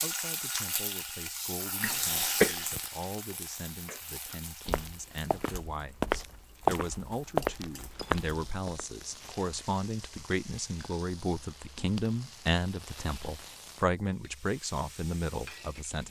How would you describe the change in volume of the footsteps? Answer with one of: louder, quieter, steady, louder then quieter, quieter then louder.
louder then quieter.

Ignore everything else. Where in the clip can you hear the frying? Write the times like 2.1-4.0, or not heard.
0.0-16.0.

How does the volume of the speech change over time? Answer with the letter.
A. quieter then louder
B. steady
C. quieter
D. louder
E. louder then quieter
D.